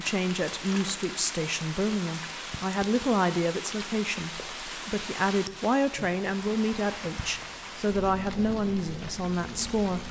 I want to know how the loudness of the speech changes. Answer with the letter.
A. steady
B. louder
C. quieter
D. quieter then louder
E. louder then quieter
A.